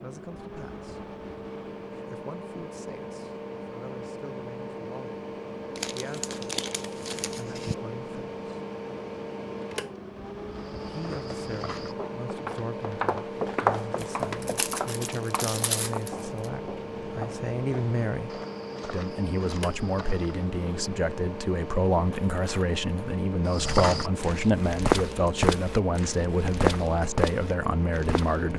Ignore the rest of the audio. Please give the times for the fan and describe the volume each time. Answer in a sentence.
You can hear the fan from 0.0 to 28.5 s, at a steady volume.